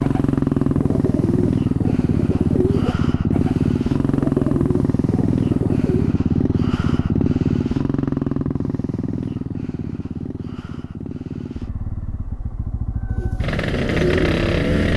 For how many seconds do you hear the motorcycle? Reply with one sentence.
The motorcycle can be heard for 15 seconds in total.